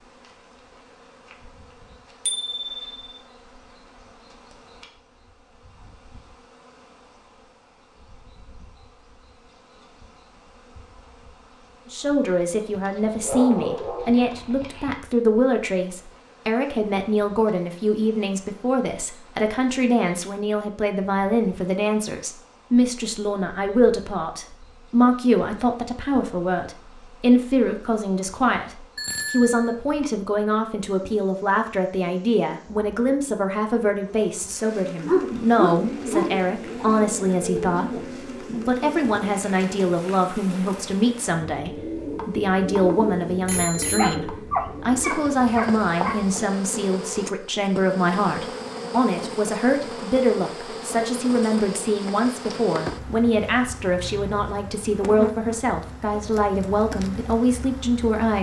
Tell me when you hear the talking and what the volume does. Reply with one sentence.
The talking can be heard from 11.9 to 58.3 s, at a steady volume.